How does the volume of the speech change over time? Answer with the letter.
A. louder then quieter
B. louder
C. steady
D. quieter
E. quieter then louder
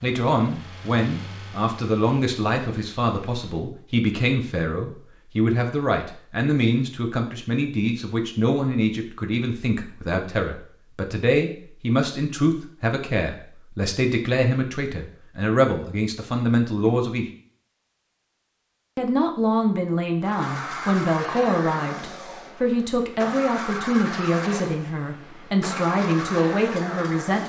C.